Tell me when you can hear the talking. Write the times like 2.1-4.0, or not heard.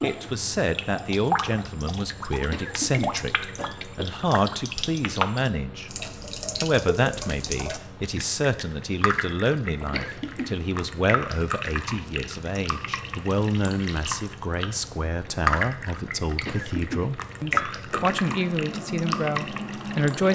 0.0-5.9, 6.6-20.3.